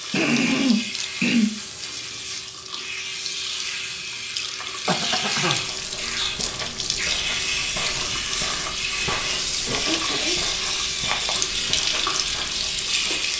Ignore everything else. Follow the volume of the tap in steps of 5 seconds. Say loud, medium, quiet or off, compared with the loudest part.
medium, loud, loud.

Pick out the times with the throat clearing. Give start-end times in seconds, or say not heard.
0.1-1.5, 4.8-5.6, 9.7-10.4.